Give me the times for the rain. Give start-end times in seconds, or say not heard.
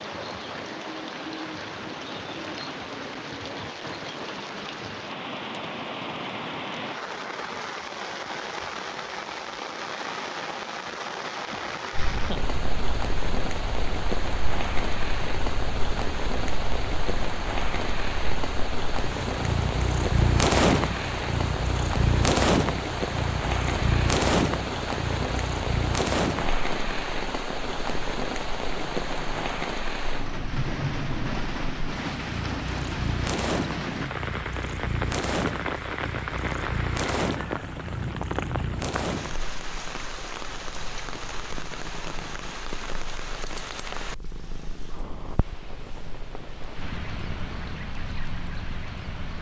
0.0-49.3.